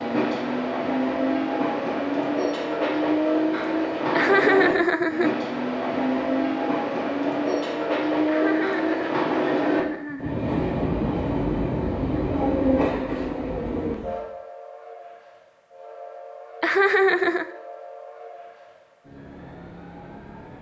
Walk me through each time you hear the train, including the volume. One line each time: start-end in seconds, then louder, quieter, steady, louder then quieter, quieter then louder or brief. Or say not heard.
0.0-20.5 quieter.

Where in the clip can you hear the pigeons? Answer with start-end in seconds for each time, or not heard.
not heard.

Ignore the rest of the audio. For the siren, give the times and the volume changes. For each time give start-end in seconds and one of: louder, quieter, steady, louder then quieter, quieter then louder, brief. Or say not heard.
not heard.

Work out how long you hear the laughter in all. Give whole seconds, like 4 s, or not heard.
4 s.